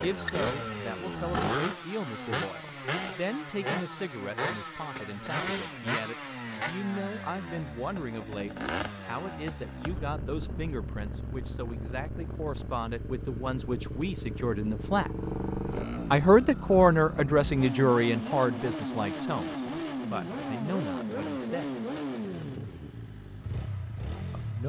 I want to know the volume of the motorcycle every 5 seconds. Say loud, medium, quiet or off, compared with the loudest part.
loud, loud, medium, loud, loud.